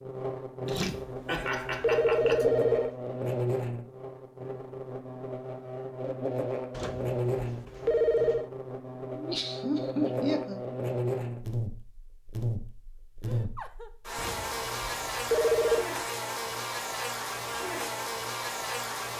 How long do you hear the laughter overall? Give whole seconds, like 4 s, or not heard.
4 s.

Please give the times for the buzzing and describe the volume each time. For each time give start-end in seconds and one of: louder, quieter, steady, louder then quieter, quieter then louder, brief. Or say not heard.
0.0-19.1 steady.